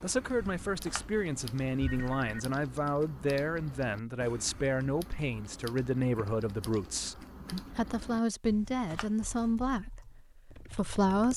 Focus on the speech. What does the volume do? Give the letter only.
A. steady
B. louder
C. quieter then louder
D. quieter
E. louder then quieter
A.